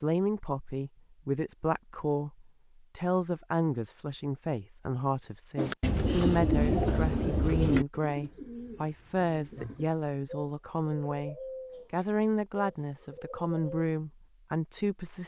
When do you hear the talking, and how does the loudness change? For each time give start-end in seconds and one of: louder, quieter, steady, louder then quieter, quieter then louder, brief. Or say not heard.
0.0-15.2 steady.